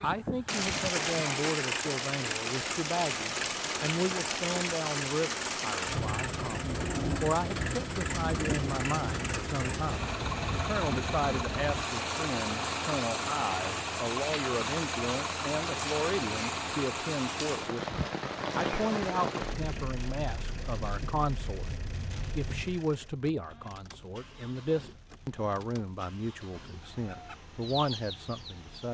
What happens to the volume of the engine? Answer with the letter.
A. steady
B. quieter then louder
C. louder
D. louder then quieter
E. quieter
E.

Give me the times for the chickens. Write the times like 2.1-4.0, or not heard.
27.0-28.8.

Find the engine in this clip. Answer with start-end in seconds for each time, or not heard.
0.0-28.8.